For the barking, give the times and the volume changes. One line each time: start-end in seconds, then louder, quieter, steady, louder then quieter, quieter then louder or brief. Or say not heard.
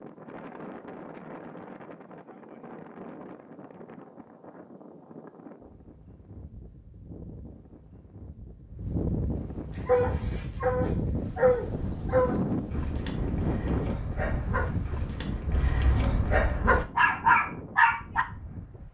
9.8-18.2 quieter then louder.